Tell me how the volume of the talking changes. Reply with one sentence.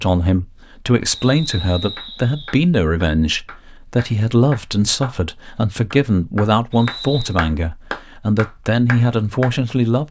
The loudness of the talking stays about the same.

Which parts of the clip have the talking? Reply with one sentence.
You can hear the talking from 0.0 to 10.0 s.